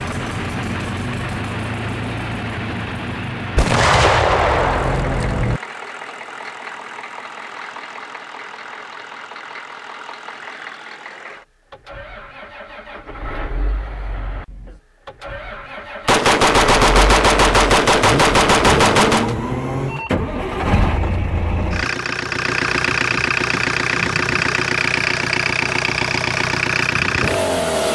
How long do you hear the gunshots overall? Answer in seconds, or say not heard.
5 s.